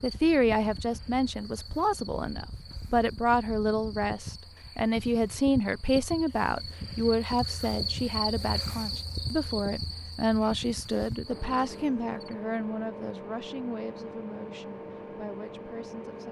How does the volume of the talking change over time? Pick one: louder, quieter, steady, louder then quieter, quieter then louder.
quieter.